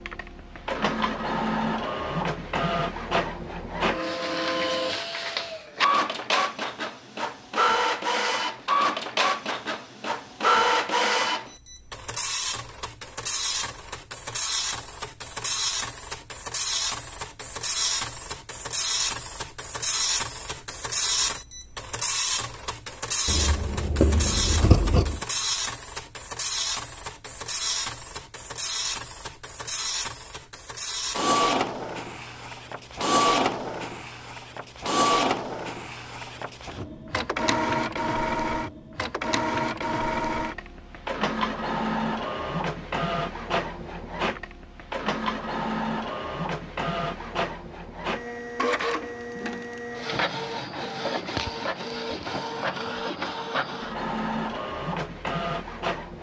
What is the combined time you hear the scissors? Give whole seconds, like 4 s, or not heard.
2 s.